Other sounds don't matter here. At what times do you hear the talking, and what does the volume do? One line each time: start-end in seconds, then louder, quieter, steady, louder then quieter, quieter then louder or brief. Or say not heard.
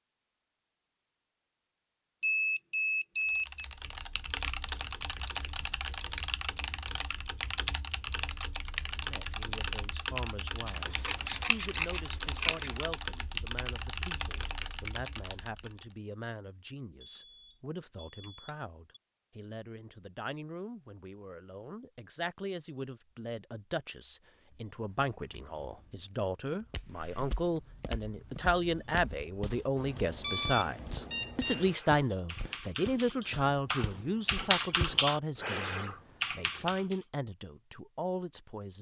8.9-38.7 louder.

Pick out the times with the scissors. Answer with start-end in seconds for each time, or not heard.
10.7-12.8.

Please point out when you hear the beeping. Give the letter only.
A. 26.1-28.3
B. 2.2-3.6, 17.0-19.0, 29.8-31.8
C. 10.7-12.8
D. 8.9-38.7
B.